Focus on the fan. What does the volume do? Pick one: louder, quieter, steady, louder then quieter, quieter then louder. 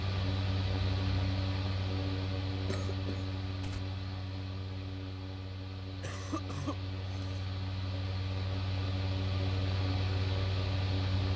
quieter then louder.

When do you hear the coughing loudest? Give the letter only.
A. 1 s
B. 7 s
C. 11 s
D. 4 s
B.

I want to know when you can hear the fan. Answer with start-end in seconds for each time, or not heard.
0.0-11.3.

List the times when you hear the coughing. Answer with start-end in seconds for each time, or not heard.
2.6-3.8, 6.0-7.4.